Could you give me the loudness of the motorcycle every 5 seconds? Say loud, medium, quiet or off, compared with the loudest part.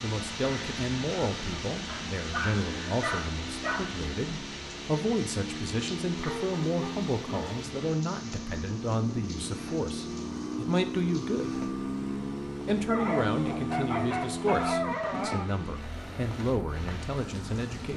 medium, medium, loud, medium.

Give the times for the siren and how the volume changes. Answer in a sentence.
The siren can't be heard in this clip.